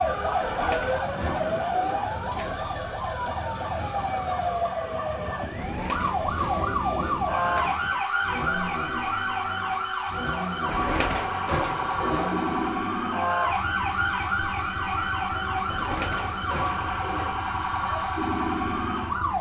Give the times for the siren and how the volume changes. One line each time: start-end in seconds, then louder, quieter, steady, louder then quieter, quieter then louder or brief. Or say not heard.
0.0-19.3 steady.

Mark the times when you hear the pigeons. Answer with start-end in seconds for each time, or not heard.
0.4-2.8, 5.5-8.1, 10.7-12.6, 15.7-17.4.